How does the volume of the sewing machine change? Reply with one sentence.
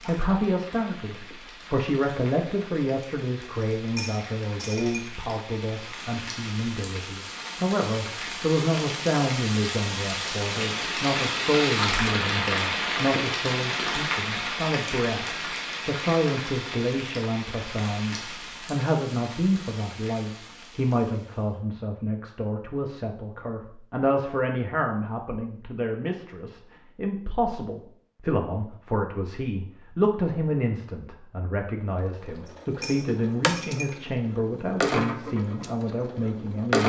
The loudness of the sewing machine goes up, then down.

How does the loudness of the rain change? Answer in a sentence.
The loudness of the rain goes up, then down.